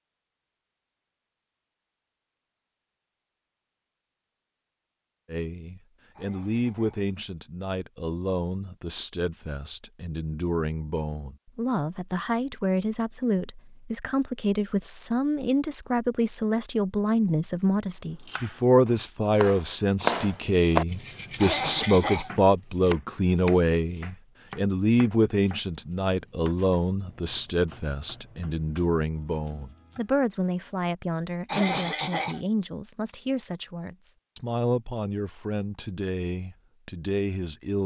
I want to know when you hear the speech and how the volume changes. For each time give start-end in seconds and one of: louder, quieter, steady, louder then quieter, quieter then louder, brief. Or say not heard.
5.2-37.8 louder then quieter.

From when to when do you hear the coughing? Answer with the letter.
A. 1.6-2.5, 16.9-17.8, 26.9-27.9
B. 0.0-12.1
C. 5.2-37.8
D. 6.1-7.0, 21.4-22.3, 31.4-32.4
D.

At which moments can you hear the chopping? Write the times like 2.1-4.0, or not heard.
18.1-30.2.